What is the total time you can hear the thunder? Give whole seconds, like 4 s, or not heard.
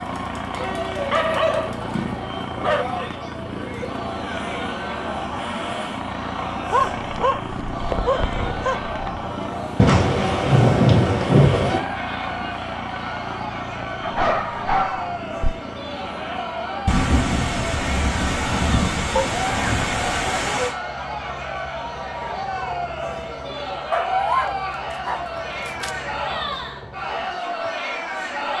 6 s.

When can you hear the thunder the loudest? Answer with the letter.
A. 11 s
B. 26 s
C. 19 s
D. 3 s
A.